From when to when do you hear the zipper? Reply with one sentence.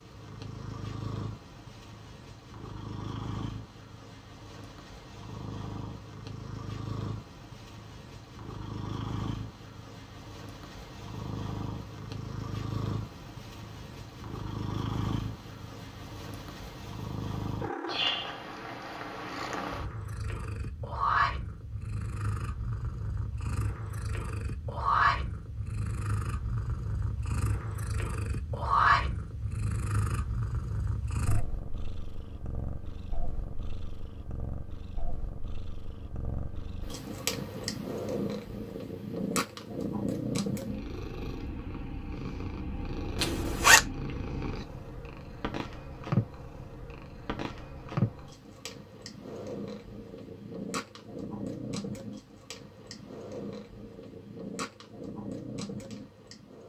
The zipper can be heard from 43.1 to 43.8 s.